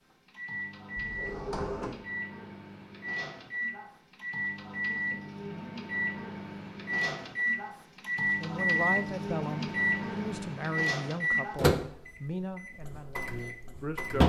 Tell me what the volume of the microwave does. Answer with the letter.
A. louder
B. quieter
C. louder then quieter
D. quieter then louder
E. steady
A.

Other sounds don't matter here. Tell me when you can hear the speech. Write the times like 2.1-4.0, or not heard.
8.4-14.2.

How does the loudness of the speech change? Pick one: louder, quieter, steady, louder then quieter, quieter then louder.
quieter.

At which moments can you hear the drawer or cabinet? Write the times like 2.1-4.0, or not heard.
0.9-2.0.